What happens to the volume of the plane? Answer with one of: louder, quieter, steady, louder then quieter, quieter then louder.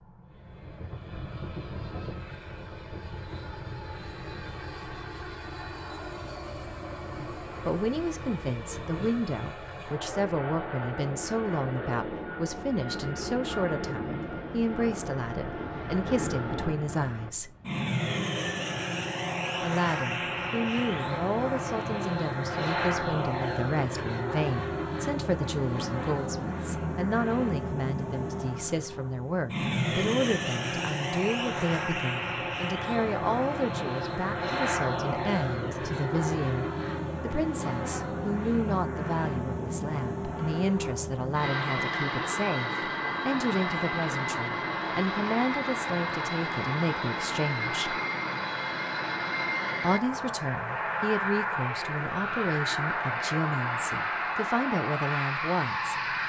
louder.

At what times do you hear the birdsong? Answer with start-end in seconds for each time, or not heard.
not heard.